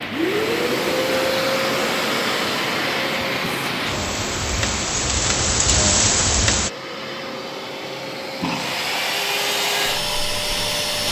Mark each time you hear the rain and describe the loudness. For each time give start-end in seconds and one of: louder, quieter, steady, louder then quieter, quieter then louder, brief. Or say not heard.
0.0-6.7 louder.